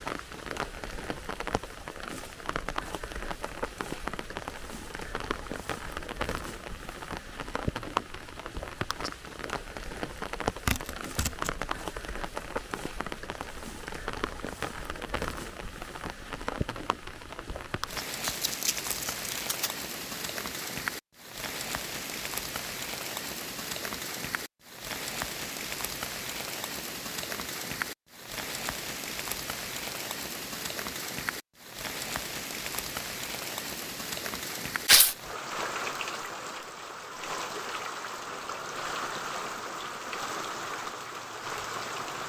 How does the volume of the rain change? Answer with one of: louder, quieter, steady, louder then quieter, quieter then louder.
steady.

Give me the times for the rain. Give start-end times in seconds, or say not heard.
0.0-42.2.